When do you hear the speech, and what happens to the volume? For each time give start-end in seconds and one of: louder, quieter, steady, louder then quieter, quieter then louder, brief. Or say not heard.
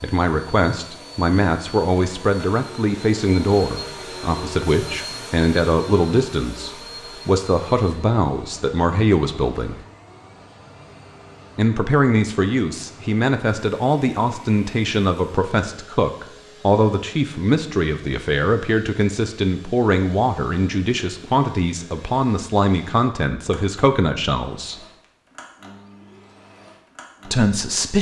0.0-9.8 steady
11.6-24.8 steady
27.2-27.9 brief.